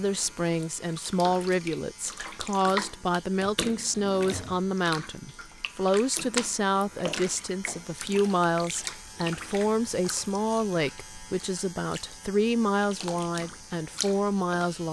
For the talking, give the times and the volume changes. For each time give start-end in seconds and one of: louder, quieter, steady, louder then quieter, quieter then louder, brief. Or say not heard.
0.0-14.8 steady.